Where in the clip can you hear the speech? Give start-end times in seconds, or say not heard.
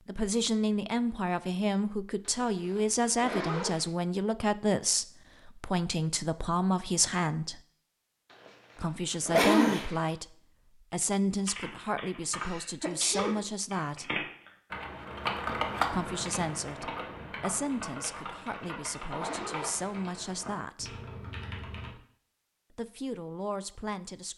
0.1-7.6, 8.8-14.2, 15.8-21.0, 22.7-24.3.